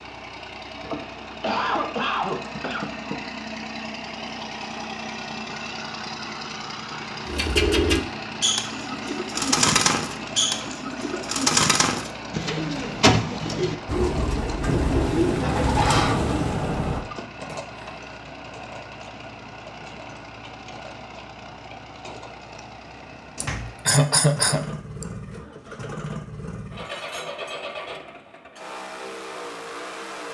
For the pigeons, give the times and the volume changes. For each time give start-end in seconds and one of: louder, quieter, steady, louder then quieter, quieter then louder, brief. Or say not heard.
7.2-16.6 steady.